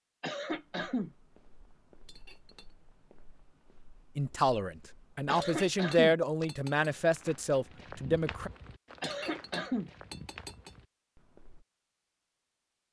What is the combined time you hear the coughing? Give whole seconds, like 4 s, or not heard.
3 s.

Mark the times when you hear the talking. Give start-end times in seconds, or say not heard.
4.2-8.5.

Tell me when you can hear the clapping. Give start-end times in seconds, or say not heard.
not heard.